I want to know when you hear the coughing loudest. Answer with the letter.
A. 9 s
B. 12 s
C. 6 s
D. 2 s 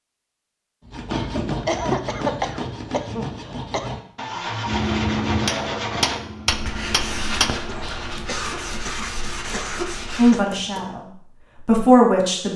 D.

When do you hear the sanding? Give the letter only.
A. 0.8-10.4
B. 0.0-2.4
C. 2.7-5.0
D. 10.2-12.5
A.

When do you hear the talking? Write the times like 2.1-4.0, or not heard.
10.2-12.5.